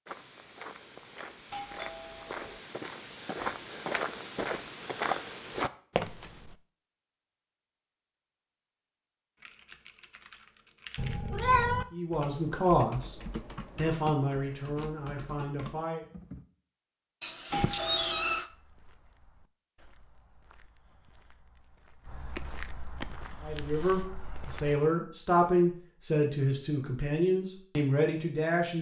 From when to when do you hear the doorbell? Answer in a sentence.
You can hear the doorbell from 1.5 to 2.4 s and from 17.5 to 18.4 s.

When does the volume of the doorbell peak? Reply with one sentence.
The volume of the doorbell peaks at 18 seconds.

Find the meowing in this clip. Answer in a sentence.
The meowing can be heard from 10.9 to 11.8 s and from 17.2 to 18.4 s.